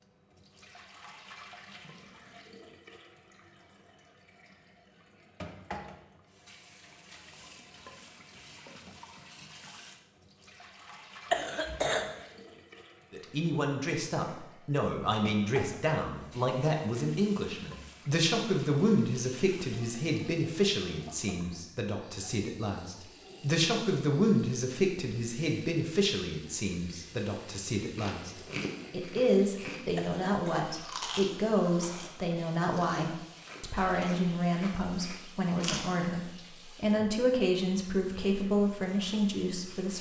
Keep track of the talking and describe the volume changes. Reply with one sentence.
The volume of the talking stays about the same.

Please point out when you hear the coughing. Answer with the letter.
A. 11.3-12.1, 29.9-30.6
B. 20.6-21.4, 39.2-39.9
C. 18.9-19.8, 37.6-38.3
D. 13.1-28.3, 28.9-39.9
A.